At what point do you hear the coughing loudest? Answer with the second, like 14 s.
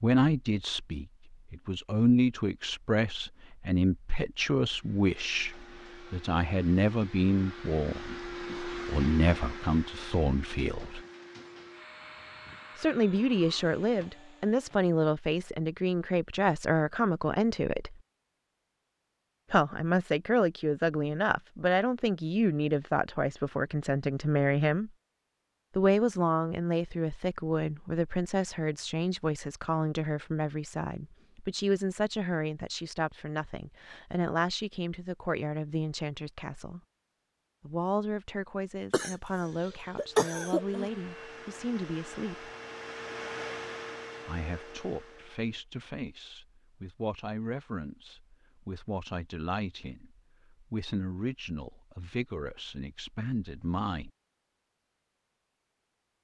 40 s.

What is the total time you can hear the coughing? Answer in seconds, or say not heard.
2 s.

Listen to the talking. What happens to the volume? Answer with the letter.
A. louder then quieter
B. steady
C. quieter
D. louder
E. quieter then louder
C.